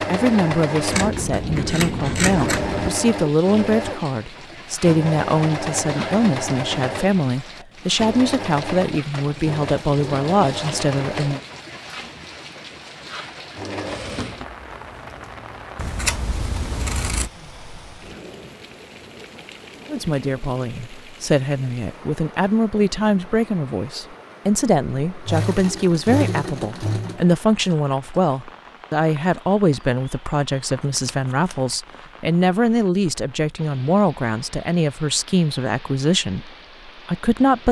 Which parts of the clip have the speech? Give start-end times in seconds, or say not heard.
0.1-11.4, 19.9-37.6.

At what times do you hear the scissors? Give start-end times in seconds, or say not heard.
0.9-2.9, 15.8-17.3, 30.9-31.8.